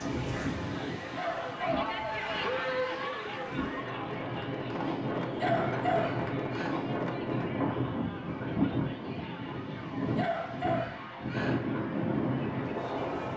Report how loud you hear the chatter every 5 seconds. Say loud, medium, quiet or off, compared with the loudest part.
loud, medium, medium.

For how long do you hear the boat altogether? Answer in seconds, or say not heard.
not heard.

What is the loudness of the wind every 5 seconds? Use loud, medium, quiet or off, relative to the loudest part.
medium, loud, loud.